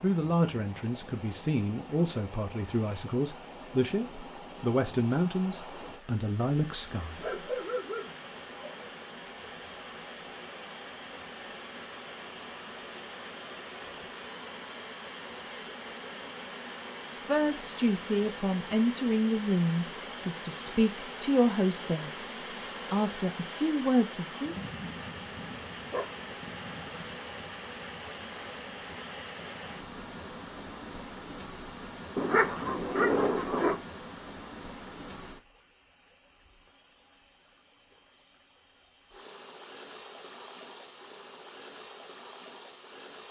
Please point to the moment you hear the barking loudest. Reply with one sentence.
The volume of the barking peaks at 33 seconds.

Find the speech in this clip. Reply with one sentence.
The speech can be heard from 0.0 to 7.2 s and from 17.2 to 24.6 s.